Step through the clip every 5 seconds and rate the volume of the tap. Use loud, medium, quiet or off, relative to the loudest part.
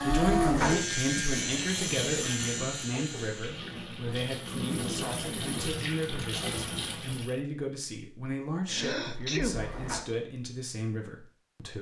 loud, loud, off.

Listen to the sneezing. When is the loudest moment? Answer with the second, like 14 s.
9 s.